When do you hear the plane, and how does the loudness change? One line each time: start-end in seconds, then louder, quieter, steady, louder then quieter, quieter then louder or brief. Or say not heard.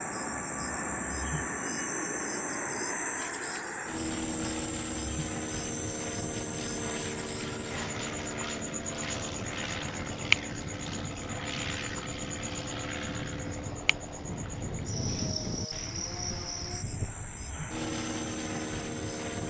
0.0-19.4 steady.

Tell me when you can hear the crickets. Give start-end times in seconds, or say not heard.
0.0-19.4.